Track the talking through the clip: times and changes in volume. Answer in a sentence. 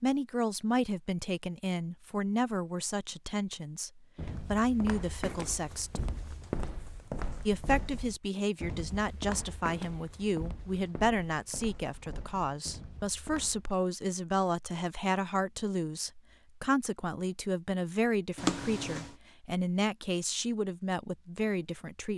The talking can be heard from 0.0 to 6.0 s, getting quieter then louder; and from 7.5 to 22.1 s, at a steady volume.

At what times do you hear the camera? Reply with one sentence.
You can hear the camera from 18.4 to 19.1 s.